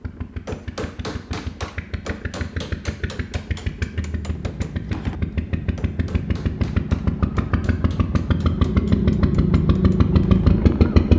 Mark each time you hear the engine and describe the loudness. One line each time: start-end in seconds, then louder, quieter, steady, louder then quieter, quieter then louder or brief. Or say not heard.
0.0-11.1 louder.